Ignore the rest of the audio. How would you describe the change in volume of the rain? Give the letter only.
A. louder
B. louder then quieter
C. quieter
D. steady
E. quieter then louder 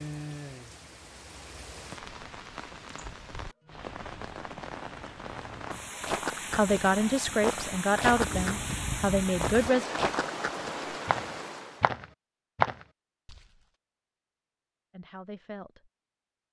A.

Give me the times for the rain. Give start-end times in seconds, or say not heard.
0.0-11.9.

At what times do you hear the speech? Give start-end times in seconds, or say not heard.
6.3-9.8, 14.9-15.9.